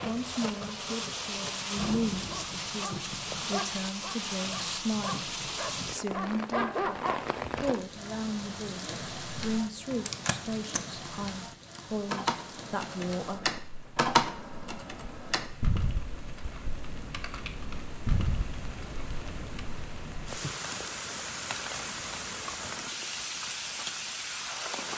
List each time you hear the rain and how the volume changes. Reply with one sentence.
The rain can be heard from 0.0 to 24.9 s, getting quieter then louder.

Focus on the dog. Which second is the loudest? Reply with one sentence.
The volume of the dog peaks at 7 seconds.